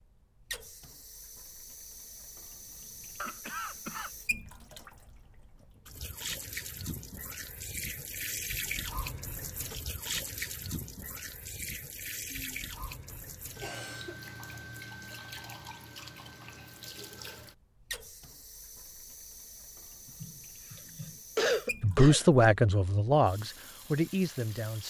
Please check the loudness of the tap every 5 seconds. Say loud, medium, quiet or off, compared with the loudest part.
medium, loud, loud, medium, medium.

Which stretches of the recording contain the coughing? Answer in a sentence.
The coughing can be heard from 3.1 to 4.5 s, from 12.3 to 14.2 s and from 20.2 to 22.3 s.